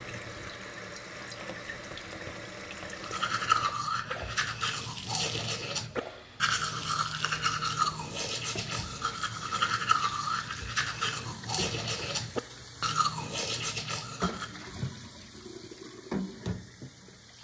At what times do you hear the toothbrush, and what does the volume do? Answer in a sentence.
The toothbrush can be heard from 3.0 to 14.7 s, at a steady volume.